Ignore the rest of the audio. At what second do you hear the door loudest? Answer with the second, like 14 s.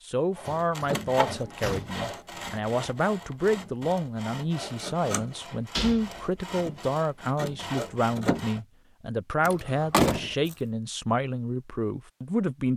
10 s.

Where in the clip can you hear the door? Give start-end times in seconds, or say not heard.
0.5-2.0, 5.8-6.3, 9.4-10.6.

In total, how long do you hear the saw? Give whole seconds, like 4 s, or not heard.
8 s.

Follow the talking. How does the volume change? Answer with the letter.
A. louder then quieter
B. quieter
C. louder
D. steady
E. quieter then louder
D.